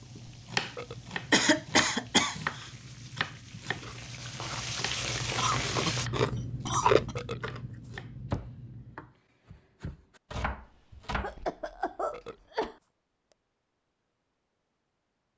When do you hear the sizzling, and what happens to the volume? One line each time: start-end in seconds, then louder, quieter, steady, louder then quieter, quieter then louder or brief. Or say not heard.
0.0-6.1 louder.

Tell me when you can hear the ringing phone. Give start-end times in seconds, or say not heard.
not heard.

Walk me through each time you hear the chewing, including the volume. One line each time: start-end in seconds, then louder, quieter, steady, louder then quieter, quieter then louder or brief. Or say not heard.
0.0-9.2 louder then quieter.